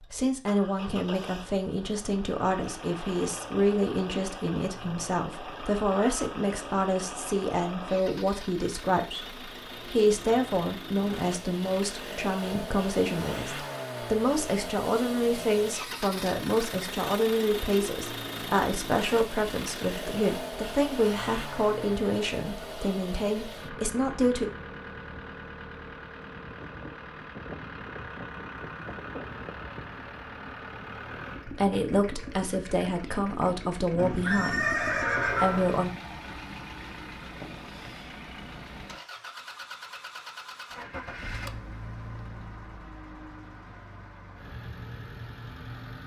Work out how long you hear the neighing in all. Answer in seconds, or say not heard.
2 s.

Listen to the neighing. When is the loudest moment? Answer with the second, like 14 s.
35 s.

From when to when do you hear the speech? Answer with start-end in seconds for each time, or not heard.
0.1-24.5, 31.4-35.9.